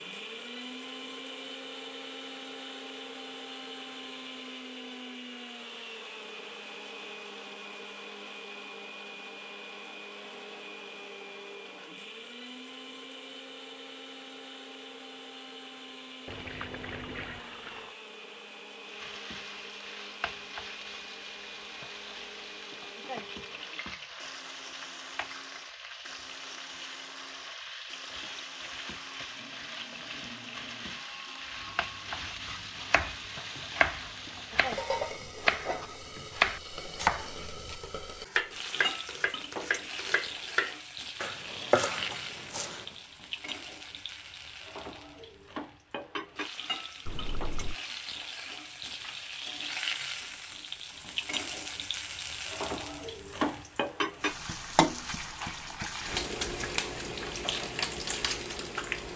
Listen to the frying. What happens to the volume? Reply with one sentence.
The loudness of the frying goes up.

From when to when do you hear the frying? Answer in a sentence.
The frying can be heard from 18.8 to 59.1 s.